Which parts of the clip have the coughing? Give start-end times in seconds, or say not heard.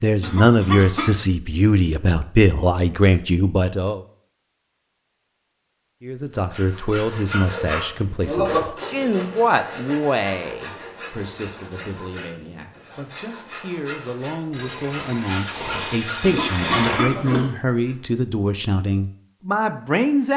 0.2-1.1, 16.2-17.5.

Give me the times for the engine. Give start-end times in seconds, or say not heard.
14.5-17.0.